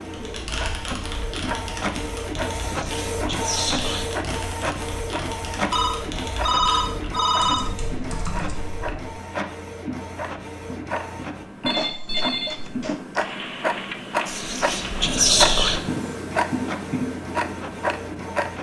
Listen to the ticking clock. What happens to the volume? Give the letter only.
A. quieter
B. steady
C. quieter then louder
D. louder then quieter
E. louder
E.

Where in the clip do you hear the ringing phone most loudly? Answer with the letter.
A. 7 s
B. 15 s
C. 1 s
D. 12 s
A.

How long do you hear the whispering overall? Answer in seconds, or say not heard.
3 s.